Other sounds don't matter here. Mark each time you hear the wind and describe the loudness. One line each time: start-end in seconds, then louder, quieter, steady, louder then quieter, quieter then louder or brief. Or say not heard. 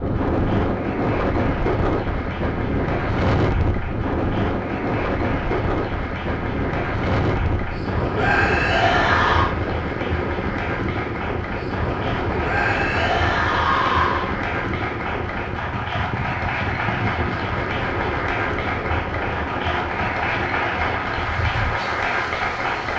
0.0-22.9 quieter.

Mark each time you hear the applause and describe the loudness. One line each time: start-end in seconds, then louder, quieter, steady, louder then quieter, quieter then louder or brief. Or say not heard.
0.0-22.9 louder.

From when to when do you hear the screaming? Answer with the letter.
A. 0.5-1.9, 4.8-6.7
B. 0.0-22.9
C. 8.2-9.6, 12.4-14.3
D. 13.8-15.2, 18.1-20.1
C.